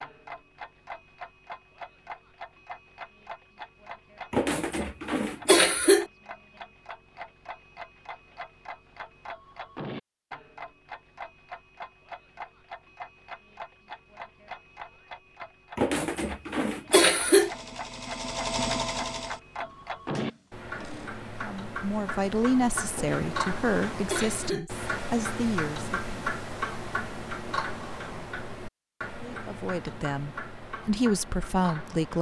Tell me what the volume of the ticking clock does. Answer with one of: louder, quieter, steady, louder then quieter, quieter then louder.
louder.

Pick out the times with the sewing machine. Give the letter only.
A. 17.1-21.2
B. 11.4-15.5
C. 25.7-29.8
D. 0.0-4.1
A.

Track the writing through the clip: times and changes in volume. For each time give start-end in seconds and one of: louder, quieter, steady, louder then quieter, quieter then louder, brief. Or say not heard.
not heard.